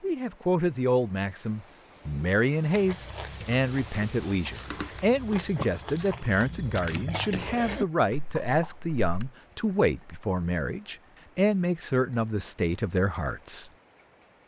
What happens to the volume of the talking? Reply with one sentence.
The volume of the talking stays about the same.